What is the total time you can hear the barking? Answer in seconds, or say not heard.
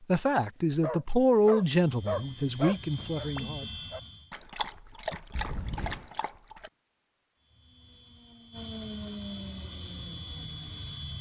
6 s.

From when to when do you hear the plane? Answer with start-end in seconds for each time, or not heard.
1.8-4.3, 7.3-11.1.